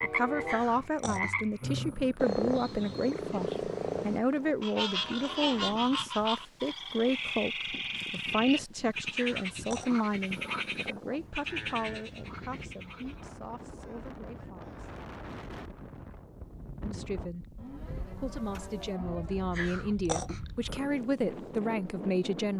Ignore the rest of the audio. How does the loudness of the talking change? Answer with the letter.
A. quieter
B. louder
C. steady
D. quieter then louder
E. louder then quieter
D.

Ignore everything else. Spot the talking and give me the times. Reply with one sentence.
The talking can be heard from 0.0 to 14.9 s and from 16.8 to 22.5 s.